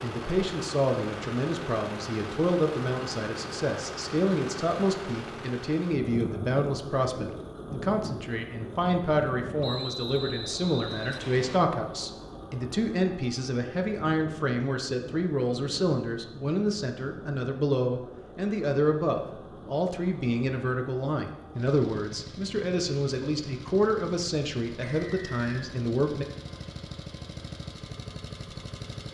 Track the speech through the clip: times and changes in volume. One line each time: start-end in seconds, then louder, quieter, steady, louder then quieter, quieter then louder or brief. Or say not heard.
0.0-26.2 steady.